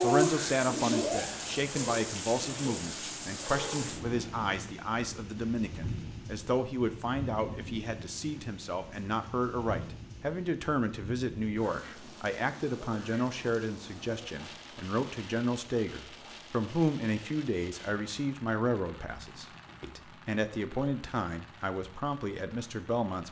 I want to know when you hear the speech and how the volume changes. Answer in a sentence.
You can hear the speech from 0.0 to 23.2 s, at a steady volume.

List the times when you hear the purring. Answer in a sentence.
You can hear the purring from 0.0 to 4.2 s.